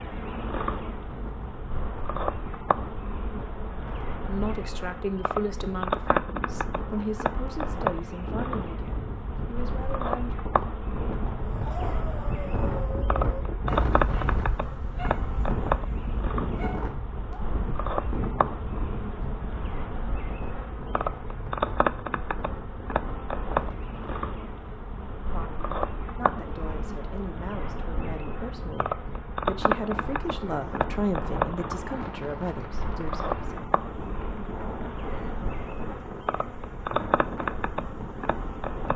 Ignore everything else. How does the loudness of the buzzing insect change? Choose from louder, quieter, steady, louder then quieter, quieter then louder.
steady.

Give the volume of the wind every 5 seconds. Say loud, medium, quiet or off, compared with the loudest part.
medium, medium, loud, loud, medium, medium, medium, medium.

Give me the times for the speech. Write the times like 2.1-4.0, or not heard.
4.2-10.4, 25.3-33.6.